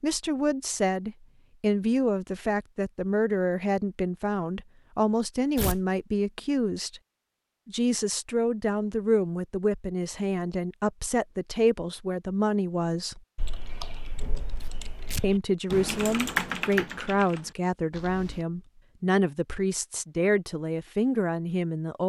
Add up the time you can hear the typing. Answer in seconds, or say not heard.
5 s.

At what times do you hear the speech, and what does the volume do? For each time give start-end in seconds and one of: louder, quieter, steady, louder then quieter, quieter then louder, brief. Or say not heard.
0.0-7.0 steady
7.7-13.2 steady
15.2-22.0 steady.